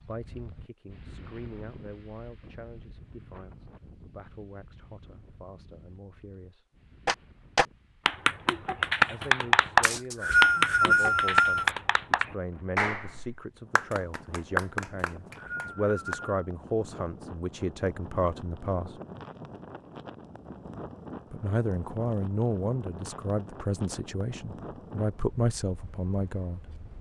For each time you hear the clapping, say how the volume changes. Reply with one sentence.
You can hear the clapping from 7.0 to 16.1 s, getting quieter.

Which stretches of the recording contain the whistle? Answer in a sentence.
You can hear the whistle from 9.8 to 11.7 s and from 15.1 to 16.3 s.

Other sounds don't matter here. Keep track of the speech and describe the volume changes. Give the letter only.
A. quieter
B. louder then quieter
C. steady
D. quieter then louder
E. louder
E.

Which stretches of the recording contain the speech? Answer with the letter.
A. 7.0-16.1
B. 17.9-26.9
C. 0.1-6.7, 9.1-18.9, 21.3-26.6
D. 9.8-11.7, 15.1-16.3
C.